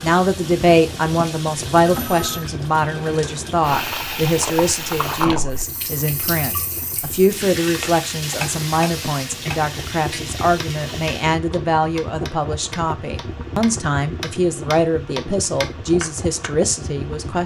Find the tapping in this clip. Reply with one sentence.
The tapping can be heard from 7.8 to 16.5 s.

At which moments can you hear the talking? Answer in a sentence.
The talking can be heard from 0.0 to 17.4 s.